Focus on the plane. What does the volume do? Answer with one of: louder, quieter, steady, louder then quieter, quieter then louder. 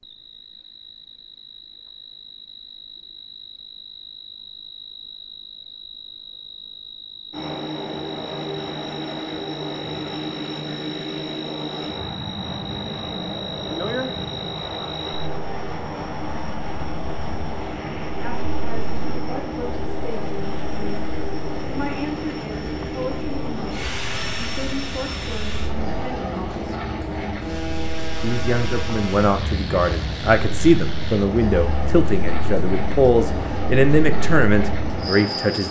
steady.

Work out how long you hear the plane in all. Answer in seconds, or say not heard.
28 s.